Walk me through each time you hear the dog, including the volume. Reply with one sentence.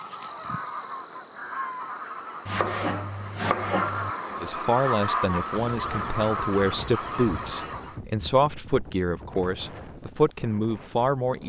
You can't hear the dog here.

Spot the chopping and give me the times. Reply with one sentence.
The chopping can be heard from 2.5 to 4.1 s.